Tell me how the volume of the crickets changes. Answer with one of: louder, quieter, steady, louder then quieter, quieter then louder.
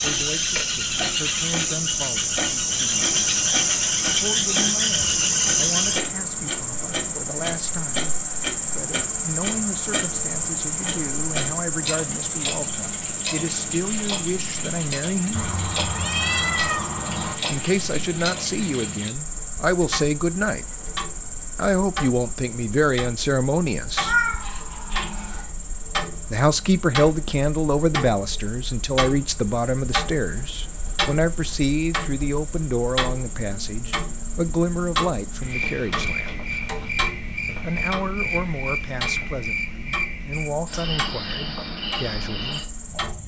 quieter then louder.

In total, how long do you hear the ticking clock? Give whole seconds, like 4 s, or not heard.
43 s.